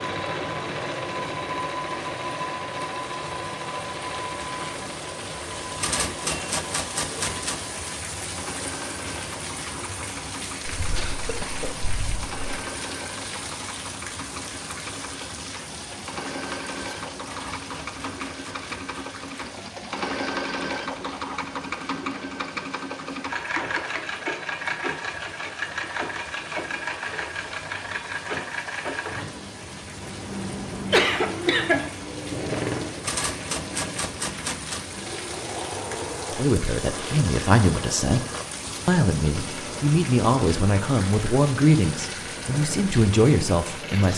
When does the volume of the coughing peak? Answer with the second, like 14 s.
31 s.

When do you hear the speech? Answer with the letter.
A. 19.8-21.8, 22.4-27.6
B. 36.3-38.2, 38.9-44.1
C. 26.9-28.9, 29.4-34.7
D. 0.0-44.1
B.